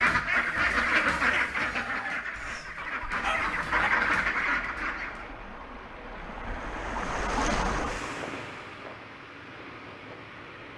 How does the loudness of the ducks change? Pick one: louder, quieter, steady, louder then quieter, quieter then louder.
quieter then louder.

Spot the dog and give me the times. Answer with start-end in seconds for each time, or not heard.
2.4-3.9.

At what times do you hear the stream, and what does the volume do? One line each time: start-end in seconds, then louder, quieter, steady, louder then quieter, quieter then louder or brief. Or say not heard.
3.1-10.7 louder then quieter.